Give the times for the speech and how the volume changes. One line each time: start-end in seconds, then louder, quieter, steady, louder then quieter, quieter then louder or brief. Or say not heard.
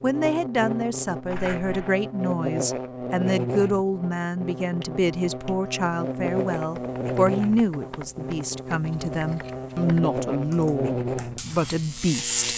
0.0-12.4 steady.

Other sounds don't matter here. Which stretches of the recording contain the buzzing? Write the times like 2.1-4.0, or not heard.
0.0-12.5.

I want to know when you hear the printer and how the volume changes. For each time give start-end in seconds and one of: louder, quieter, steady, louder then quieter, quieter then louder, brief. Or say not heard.
not heard.